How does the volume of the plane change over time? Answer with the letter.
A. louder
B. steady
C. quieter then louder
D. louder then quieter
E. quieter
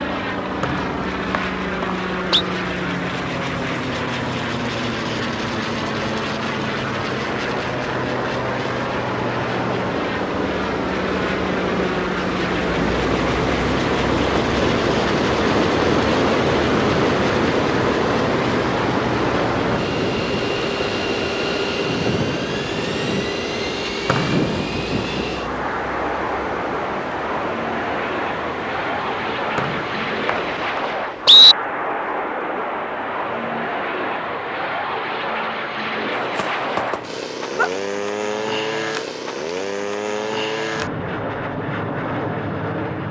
B.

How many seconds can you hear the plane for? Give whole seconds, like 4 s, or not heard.
43 s.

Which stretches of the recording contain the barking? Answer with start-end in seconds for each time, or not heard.
36.1-37.7.